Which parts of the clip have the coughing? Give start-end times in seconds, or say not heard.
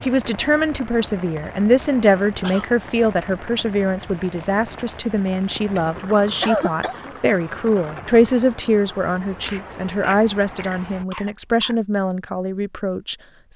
2.2-2.7, 5.7-7.0, 9.4-11.8.